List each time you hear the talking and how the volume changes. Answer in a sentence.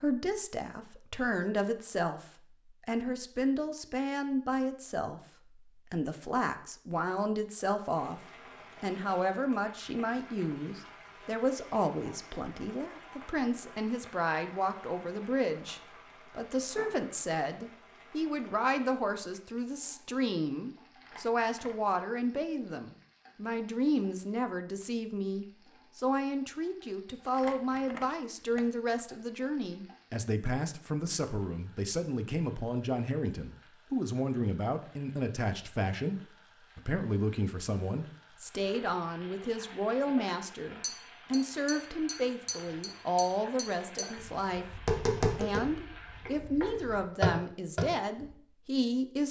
The talking can be heard from 0.0 to 49.2 s, at a steady volume.